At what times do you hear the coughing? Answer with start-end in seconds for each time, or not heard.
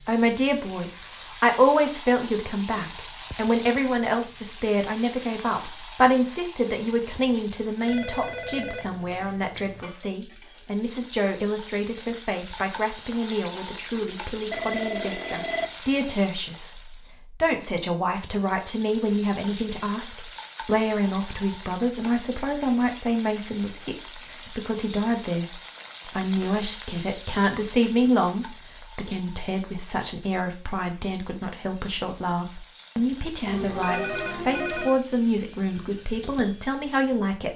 not heard.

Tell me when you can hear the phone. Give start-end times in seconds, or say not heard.
7.8-9.8, 14.5-15.8, 33.5-35.0.